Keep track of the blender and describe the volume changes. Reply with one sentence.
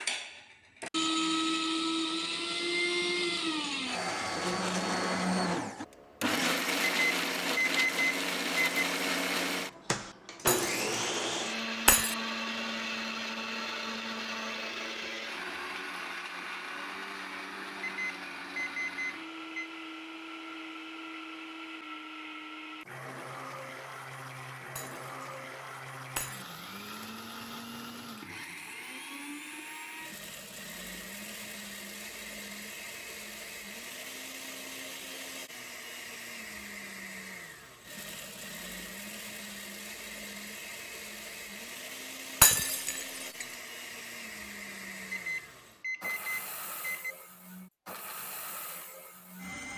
The volume of the blender goes down.